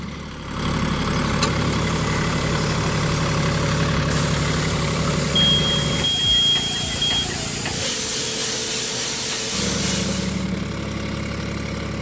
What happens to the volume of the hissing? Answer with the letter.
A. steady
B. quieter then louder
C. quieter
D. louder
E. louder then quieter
D.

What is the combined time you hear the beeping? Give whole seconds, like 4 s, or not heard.
2 s.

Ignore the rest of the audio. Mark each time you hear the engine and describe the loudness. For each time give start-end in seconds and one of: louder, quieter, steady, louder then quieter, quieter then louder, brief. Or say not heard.
0.0-6.1 steady
9.5-11.9 brief.